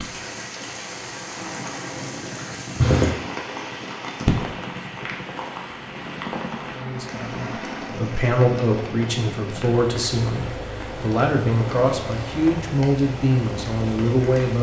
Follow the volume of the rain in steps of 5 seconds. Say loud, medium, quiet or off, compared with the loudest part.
loud, medium, medium.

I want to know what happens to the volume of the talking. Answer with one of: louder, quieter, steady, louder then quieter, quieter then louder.
steady.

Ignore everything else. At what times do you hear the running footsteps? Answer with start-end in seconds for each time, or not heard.
not heard.